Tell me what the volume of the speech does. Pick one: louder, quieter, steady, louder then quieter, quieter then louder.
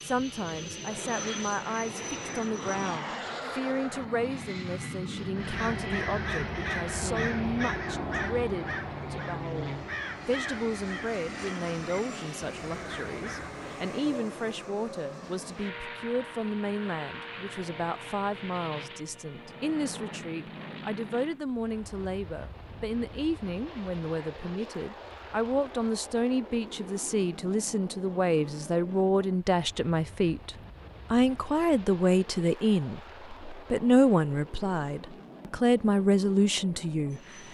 louder.